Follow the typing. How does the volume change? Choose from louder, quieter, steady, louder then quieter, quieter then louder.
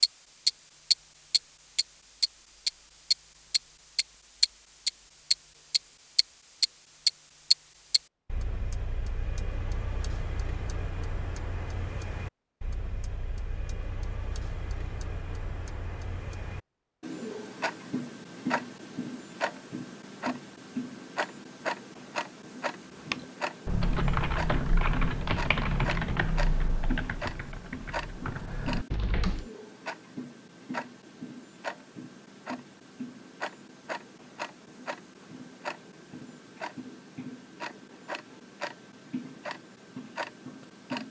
quieter.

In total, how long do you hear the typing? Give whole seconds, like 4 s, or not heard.
6 s.